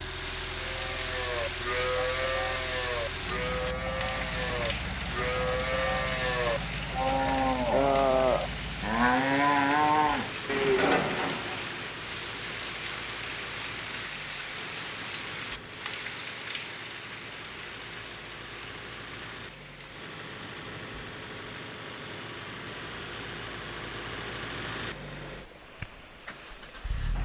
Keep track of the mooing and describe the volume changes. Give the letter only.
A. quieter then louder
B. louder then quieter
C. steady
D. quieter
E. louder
E.